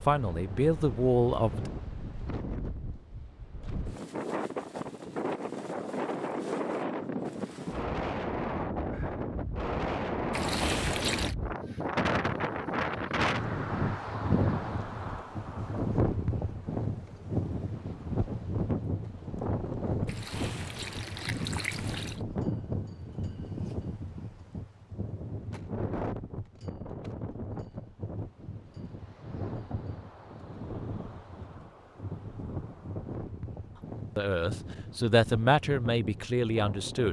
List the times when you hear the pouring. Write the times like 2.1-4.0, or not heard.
10.3-11.3, 20.1-22.2.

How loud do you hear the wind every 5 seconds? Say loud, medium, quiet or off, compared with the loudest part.
medium, loud, loud, loud, medium, medium, medium, medium.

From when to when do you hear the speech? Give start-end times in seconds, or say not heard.
0.1-1.7, 34.1-37.0.